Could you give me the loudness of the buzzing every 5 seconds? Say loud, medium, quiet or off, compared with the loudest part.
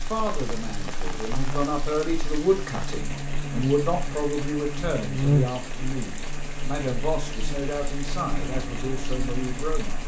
medium, loud.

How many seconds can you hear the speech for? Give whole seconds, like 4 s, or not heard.
10 s.